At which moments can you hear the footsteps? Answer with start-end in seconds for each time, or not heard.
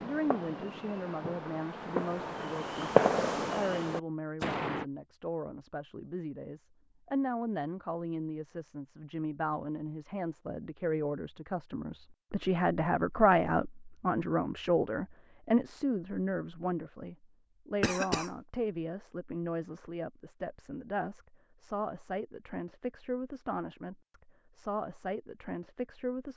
not heard.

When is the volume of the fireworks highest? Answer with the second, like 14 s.
3 s.